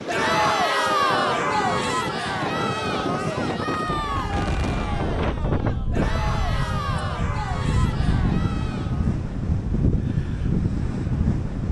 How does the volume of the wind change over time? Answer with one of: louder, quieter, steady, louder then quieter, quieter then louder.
louder.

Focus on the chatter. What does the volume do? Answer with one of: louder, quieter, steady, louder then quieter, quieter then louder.
quieter.